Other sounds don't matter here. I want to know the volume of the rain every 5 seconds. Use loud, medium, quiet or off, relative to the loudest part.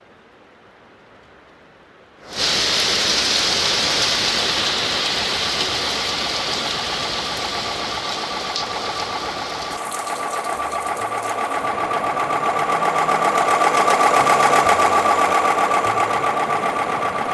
loud, loud, quiet, quiet.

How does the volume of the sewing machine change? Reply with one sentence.
The loudness of the sewing machine goes up.